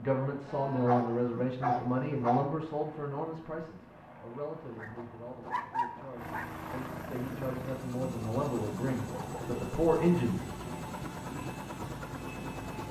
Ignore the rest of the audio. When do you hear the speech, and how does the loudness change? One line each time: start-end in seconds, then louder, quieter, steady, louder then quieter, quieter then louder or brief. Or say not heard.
0.0-10.5 quieter then louder.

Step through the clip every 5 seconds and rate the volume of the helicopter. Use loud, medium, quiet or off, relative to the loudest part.
quiet, loud, loud.